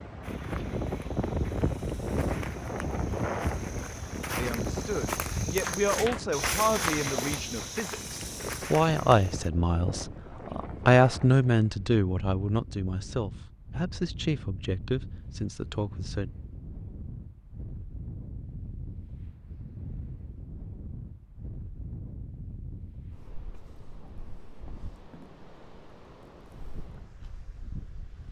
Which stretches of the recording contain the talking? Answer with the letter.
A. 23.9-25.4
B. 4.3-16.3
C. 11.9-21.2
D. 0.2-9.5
B.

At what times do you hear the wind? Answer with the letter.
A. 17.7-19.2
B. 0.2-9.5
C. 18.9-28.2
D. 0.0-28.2
D.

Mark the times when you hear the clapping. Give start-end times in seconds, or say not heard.
5.6-7.2.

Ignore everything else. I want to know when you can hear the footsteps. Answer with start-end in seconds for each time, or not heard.
0.2-9.5.